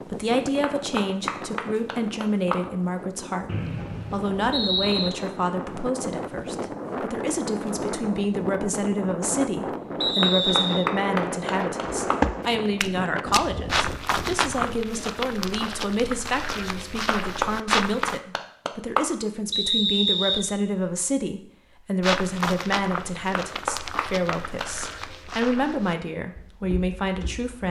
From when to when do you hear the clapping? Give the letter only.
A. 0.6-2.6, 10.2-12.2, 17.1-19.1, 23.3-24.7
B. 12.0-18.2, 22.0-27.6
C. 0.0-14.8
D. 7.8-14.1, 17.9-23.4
A.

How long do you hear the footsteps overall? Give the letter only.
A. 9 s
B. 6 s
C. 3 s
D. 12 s
D.